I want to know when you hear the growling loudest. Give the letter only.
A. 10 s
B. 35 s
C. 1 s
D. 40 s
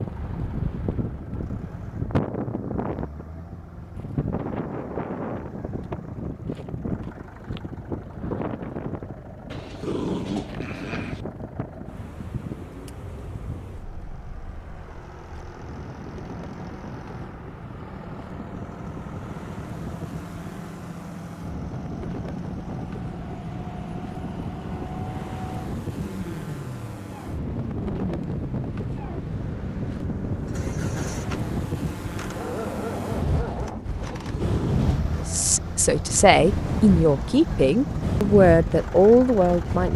A.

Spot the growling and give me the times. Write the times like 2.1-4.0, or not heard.
9.5-11.2, 34.0-35.1.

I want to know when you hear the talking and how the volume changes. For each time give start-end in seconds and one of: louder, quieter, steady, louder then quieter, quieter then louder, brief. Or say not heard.
35.2-39.9 steady.